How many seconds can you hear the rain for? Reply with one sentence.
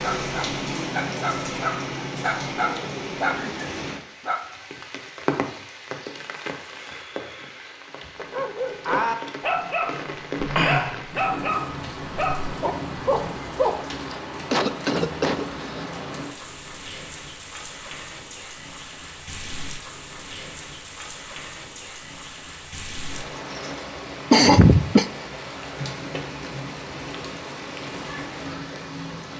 The rain can be heard for 29 seconds in total.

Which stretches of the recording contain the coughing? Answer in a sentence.
You can hear the coughing from 3.2 to 3.7 s, from 14.1 to 15.8 s and from 24.3 to 25.1 s.